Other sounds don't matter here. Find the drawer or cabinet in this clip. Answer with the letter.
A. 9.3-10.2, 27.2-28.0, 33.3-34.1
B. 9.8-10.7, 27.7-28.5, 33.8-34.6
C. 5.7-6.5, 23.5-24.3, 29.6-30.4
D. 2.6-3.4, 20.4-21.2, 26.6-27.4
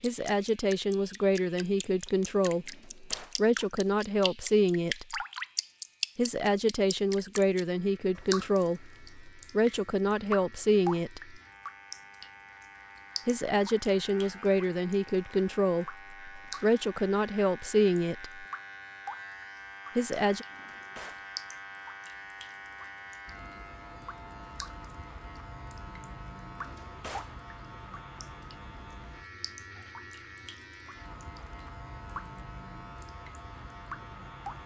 D.